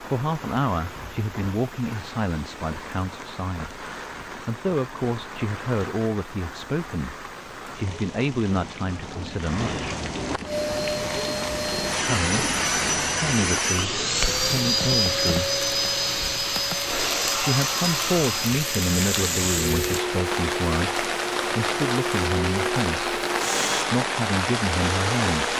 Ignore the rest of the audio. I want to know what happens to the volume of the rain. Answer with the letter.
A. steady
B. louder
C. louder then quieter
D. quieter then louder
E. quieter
B.